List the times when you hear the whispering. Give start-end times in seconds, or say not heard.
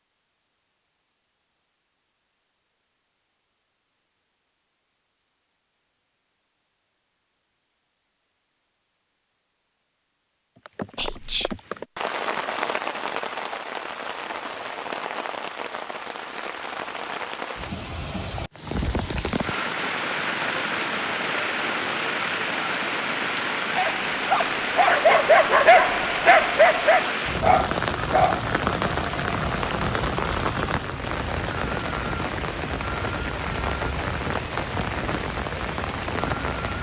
10.9-11.6.